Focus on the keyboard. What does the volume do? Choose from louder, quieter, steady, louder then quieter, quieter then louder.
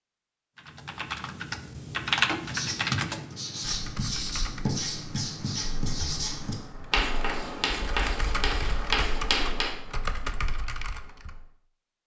quieter then louder.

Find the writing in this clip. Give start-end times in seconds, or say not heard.
2.5-9.7.